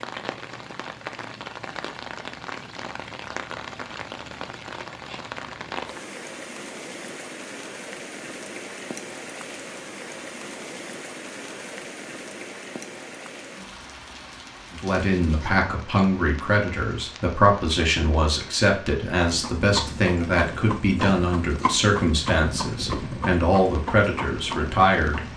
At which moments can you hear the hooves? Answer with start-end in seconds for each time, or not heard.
19.2-25.3.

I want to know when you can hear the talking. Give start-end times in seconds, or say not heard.
14.7-25.3.